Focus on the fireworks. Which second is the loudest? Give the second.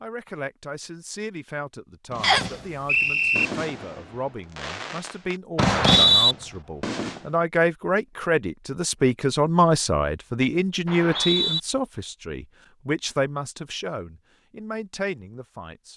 6 s.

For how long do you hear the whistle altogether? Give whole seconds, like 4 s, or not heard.
3 s.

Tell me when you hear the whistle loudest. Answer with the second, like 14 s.
6 s.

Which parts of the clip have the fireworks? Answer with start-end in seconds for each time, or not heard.
2.1-7.3.